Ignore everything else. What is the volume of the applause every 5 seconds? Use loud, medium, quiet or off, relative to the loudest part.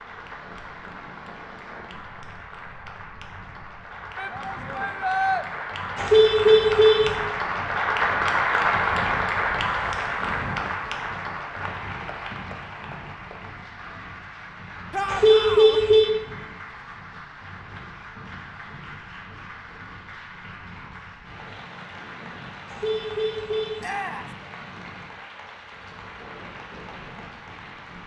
quiet, loud, medium, quiet, quiet, quiet.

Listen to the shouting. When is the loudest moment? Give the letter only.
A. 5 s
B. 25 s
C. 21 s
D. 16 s
A.